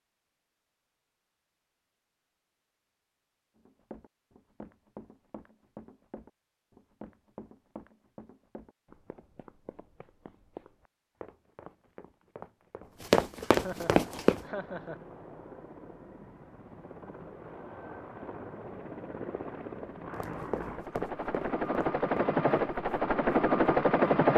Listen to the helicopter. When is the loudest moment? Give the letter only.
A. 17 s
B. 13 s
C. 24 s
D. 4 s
C.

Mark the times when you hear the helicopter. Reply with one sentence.
You can hear the helicopter from 13.8 to 24.3 s.